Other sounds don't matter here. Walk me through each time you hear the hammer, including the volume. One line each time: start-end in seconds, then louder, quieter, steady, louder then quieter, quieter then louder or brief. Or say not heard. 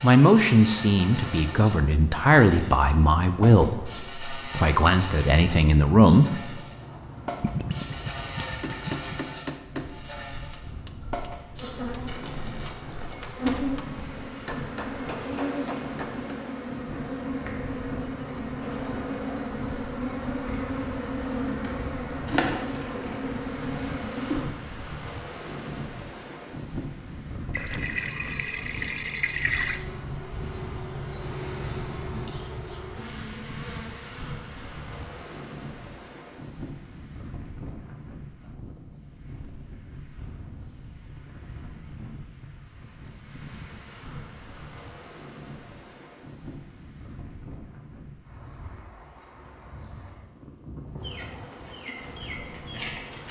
8.4-16.4 quieter then louder.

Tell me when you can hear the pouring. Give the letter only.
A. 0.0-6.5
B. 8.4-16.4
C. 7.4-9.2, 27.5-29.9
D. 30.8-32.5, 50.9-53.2
C.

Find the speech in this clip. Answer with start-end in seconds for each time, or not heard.
0.0-6.5.